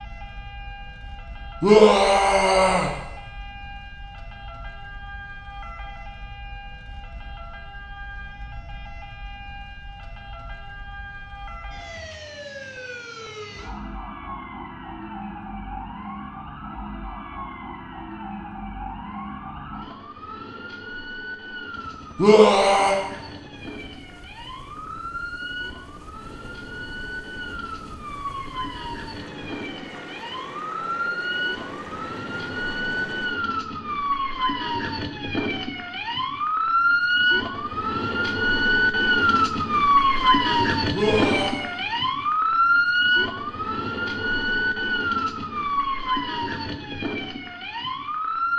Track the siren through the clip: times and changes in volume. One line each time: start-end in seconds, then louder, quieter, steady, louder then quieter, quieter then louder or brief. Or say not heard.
0.0-48.5 louder.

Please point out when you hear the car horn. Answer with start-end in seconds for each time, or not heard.
not heard.